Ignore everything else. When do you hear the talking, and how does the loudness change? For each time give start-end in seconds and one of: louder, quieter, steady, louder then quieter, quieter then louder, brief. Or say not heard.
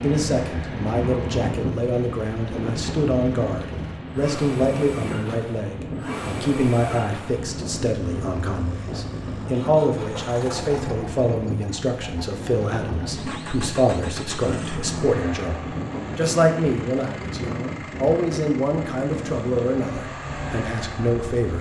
0.0-21.5 steady.